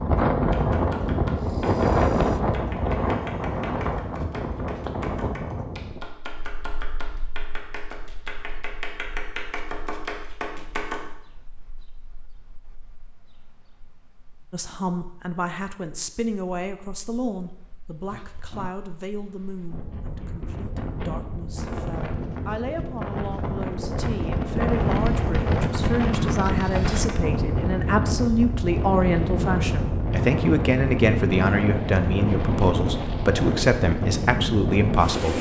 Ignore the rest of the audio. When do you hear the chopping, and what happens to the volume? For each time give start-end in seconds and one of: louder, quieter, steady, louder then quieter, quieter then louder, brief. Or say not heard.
0.5-11.1 louder.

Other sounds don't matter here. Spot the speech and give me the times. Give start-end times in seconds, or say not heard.
14.5-35.3.